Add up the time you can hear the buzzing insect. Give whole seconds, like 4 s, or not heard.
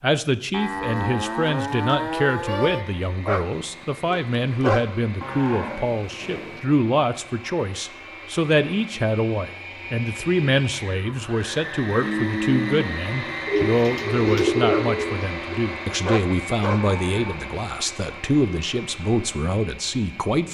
not heard.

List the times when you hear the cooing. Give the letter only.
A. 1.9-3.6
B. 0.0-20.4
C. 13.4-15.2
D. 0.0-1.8
C.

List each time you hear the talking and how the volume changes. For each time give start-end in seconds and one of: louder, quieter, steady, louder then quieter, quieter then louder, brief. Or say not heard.
0.0-20.4 steady.